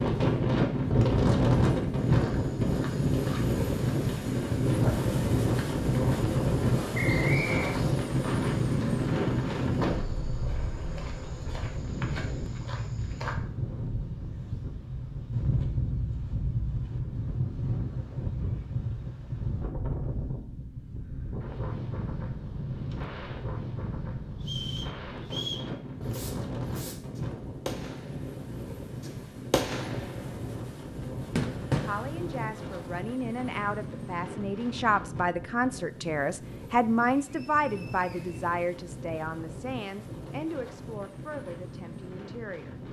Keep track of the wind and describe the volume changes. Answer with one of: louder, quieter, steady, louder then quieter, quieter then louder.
quieter.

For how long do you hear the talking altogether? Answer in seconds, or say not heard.
11 s.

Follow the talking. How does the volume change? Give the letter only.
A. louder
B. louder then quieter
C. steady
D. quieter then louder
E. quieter
B.